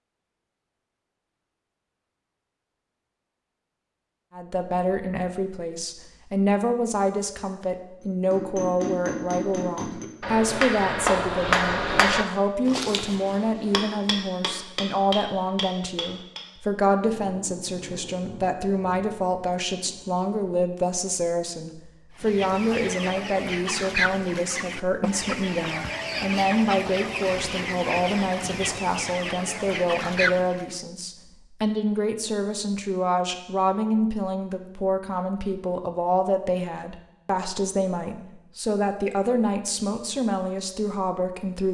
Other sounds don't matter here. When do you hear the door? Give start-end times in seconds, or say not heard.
not heard.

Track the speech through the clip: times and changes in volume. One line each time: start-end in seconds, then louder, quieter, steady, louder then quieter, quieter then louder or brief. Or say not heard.
4.3-41.6 steady.